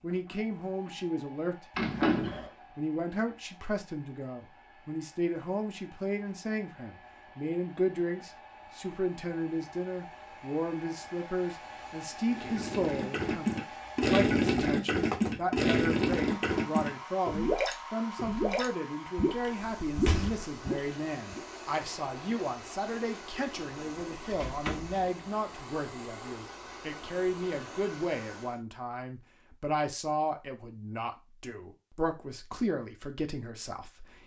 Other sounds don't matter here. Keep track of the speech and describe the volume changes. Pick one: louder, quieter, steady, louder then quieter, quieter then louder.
steady.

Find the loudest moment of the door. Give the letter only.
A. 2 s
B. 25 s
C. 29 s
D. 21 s
A.